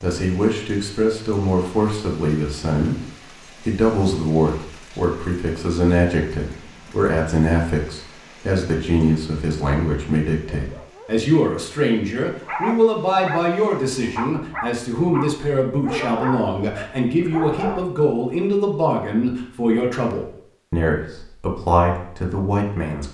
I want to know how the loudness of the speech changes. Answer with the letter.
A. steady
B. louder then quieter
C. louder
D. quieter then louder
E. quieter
A.